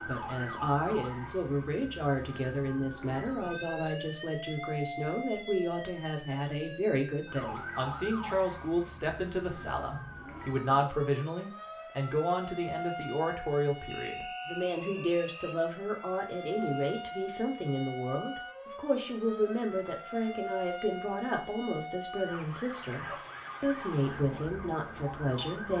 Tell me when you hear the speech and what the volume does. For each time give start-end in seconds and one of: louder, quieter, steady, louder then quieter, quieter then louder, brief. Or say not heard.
0.0-25.7 steady.